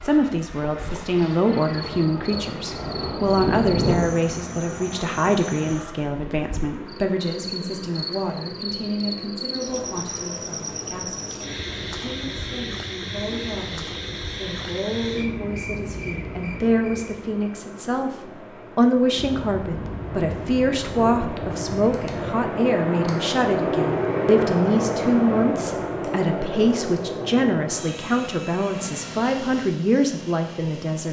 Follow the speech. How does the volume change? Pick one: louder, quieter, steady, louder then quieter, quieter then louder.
quieter then louder.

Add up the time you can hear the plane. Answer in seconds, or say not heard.
31 s.